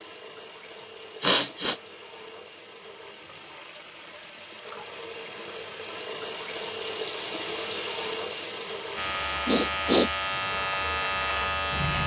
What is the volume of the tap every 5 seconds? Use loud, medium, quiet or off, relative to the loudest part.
quiet, loud, medium.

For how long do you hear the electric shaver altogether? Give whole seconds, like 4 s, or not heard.
3 s.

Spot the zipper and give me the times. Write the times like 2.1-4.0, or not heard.
not heard.